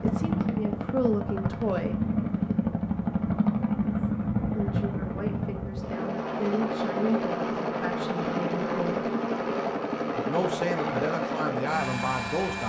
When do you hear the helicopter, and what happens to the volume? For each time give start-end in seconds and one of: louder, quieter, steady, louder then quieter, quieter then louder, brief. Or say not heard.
0.0-12.6 steady.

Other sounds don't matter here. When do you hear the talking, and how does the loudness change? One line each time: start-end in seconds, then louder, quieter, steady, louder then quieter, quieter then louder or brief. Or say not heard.
0.0-1.9 brief
4.5-9.1 louder then quieter
10.2-12.6 brief.